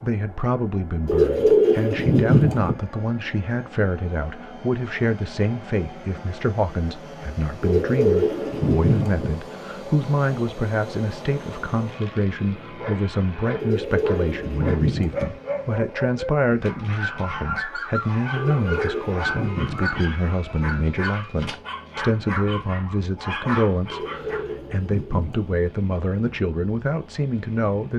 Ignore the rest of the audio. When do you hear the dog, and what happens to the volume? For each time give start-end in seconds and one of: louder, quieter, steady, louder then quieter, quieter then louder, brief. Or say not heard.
12.3-24.6 steady.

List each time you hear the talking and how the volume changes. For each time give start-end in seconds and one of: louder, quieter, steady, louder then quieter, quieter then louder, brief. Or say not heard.
0.0-27.9 steady.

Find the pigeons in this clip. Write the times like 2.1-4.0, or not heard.
1.1-2.8, 7.6-9.2, 13.6-15.2, 18.4-20.0, 23.9-25.6.